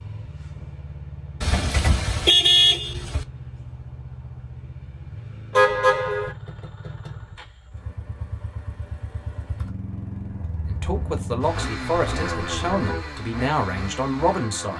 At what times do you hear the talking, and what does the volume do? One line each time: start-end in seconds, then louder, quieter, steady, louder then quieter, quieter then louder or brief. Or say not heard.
10.7-14.7 steady.